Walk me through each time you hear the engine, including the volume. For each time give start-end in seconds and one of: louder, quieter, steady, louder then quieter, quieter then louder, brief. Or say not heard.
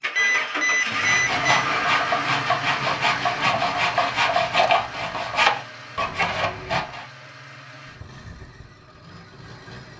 0.0-9.9 quieter.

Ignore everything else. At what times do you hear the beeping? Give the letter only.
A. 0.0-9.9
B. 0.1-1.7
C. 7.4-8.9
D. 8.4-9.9
B.